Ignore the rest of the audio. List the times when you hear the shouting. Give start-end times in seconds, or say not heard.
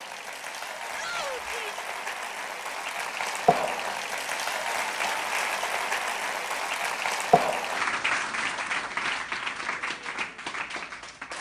0.9-1.8.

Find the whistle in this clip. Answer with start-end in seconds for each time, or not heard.
not heard.